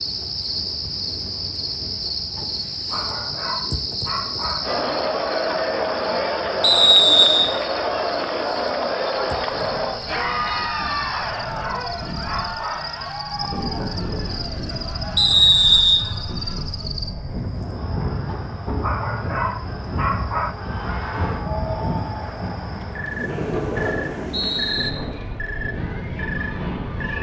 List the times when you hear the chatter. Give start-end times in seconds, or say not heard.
4.6-27.1.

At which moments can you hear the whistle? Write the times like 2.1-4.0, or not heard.
6.6-7.5, 15.2-16.1, 23.3-24.9.